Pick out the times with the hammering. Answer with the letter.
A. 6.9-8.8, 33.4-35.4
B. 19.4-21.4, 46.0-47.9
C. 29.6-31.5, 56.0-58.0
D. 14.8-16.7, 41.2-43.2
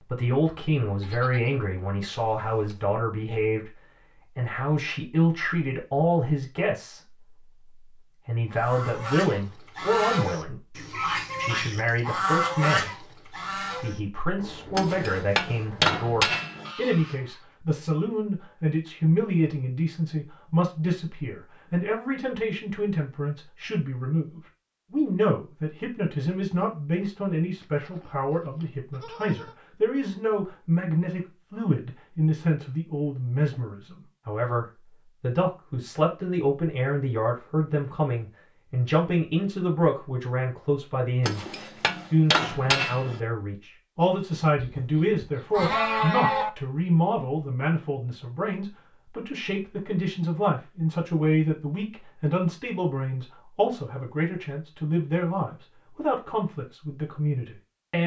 D.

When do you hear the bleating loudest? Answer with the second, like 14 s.
46 s.